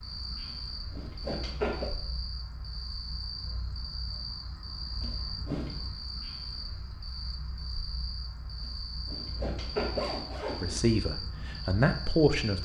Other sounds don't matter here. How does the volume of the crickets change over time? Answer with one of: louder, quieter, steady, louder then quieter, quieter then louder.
steady.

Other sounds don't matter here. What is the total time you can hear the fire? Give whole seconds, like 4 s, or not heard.
not heard.